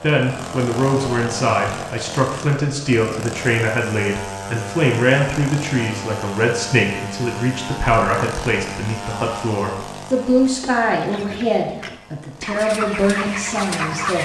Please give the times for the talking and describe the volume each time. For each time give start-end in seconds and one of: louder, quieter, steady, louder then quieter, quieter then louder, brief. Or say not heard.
0.0-14.2 steady.